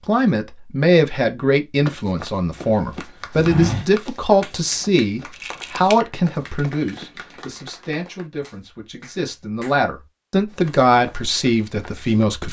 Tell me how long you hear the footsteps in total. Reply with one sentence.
You can hear the footsteps for 7 seconds altogether.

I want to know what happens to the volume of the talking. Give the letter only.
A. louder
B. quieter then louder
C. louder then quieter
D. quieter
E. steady
B.